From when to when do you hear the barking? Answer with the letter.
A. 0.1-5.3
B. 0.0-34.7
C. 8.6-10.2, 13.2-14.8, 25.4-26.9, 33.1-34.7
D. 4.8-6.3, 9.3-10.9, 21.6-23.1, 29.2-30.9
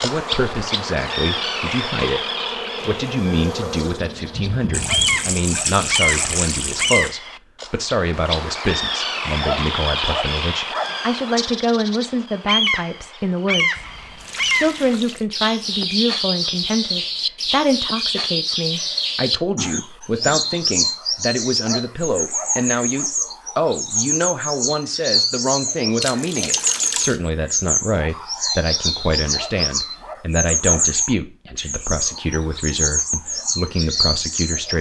D.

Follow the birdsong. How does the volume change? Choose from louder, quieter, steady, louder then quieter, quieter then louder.
steady.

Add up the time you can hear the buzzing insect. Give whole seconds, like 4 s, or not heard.
5 s.